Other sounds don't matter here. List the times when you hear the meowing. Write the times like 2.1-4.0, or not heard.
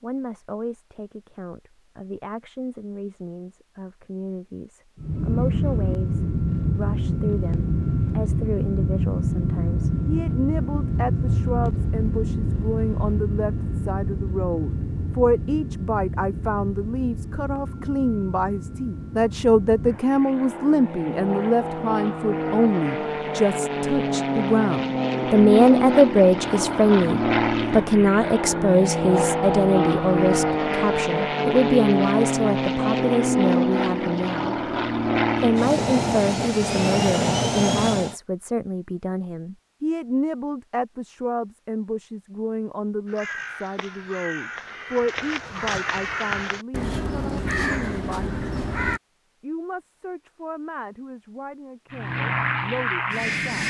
not heard.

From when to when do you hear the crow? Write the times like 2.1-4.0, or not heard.
43.0-49.0.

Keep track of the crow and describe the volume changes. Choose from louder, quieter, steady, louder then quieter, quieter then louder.
louder.